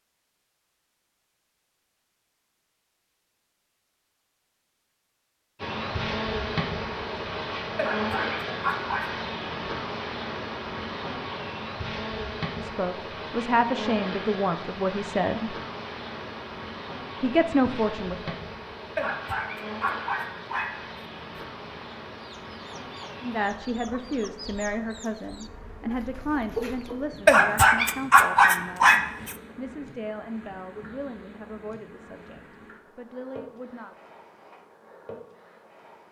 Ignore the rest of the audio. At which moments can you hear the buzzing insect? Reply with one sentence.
The buzzing insect can be heard from 5.5 to 36.0 s.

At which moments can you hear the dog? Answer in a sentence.
You can hear the dog from 7.8 to 9.2 s, from 18.9 to 21.9 s and from 27.2 to 29.4 s.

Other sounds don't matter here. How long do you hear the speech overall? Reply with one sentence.
The speech can be heard for 15 seconds in total.